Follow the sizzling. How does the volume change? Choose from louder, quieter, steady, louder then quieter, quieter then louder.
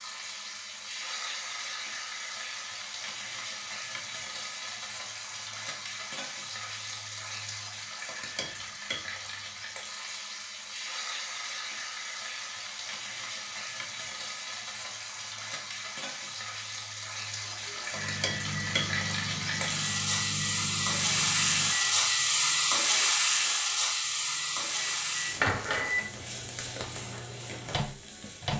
louder.